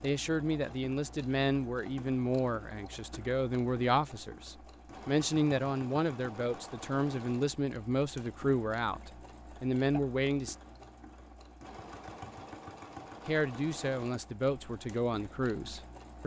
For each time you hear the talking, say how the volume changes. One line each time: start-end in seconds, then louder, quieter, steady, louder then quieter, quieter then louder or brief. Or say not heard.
0.0-10.6 steady
13.2-16.2 brief.